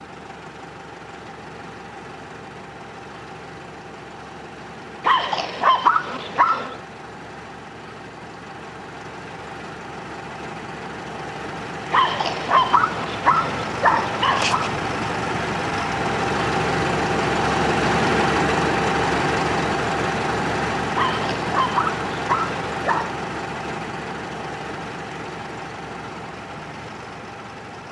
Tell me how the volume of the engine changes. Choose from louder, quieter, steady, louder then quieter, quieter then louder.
louder then quieter.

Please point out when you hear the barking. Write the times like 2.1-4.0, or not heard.
5.0-6.8, 11.9-14.7, 20.9-23.1.